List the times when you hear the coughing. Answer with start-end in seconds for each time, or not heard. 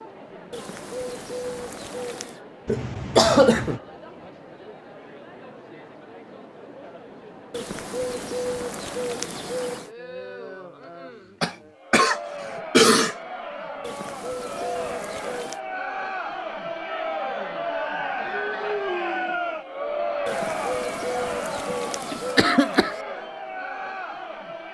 2.6-3.8, 11.4-13.2, 21.7-22.9.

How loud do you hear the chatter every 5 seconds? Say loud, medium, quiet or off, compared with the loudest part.
quiet, quiet, medium, loud, loud.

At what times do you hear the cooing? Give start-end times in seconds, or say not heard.
0.5-2.4, 7.5-9.9, 13.8-15.6, 20.2-22.4.